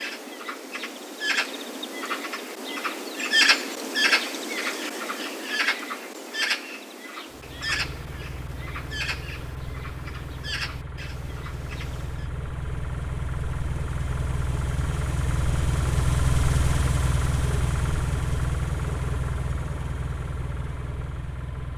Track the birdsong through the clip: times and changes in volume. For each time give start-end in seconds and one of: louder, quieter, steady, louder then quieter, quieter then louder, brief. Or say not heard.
0.0-12.3 louder then quieter.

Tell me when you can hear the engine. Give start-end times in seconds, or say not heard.
7.3-21.7.